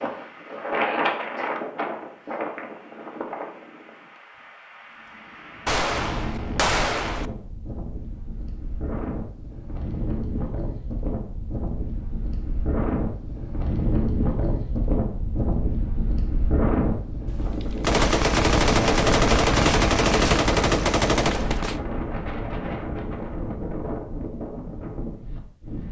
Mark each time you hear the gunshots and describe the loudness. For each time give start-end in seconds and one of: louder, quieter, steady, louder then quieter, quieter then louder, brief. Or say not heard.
5.7-7.3 brief
17.2-21.8 steady.